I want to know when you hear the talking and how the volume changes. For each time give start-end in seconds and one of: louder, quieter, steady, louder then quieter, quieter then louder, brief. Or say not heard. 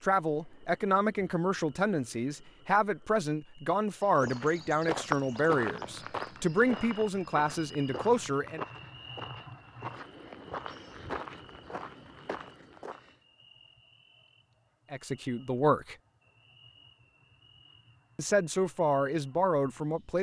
0.0-8.7 steady
14.9-15.9 brief
18.1-20.1 brief.